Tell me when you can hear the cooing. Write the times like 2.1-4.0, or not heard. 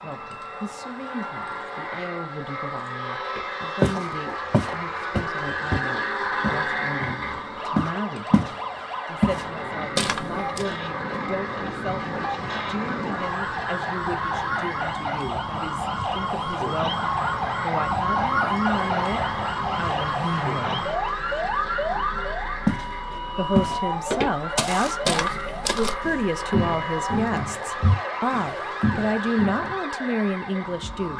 not heard.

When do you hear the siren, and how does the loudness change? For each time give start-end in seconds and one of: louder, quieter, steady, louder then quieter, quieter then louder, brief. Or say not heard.
0.0-31.1 louder then quieter.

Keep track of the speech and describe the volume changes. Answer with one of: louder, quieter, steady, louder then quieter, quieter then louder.
louder.